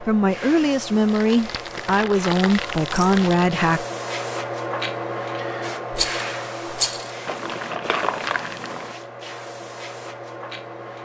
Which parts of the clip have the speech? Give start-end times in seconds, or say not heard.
0.0-3.9.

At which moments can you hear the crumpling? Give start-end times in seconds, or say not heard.
1.1-3.6, 7.2-8.9.